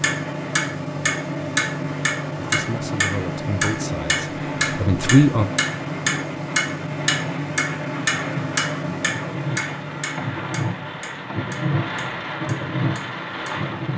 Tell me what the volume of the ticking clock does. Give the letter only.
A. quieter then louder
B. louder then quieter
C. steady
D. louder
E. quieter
E.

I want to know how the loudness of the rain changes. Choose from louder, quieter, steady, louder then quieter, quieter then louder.
louder.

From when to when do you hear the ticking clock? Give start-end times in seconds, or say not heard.
0.0-13.9.